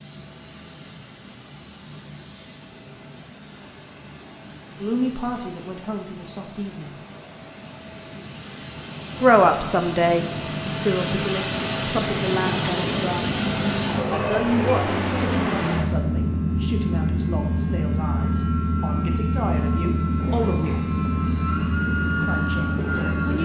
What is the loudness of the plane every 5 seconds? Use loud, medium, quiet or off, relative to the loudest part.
quiet, quiet, loud, loud, loud.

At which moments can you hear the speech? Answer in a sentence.
The speech can be heard from 4.8 to 7.0 s, from 9.2 to 13.4 s, from 14.1 to 20.8 s and from 22.2 to 23.4 s.